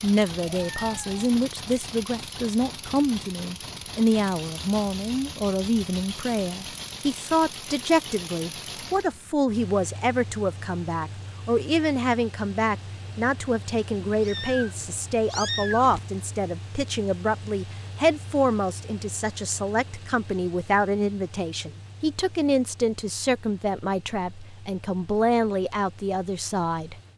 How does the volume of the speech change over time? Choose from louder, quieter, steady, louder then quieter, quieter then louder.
steady.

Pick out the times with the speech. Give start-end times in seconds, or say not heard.
0.0-26.9.